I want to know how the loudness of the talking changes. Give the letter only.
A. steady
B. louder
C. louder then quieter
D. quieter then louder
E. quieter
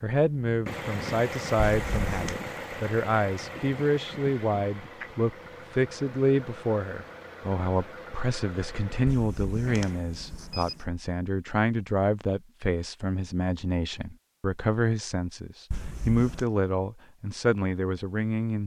A.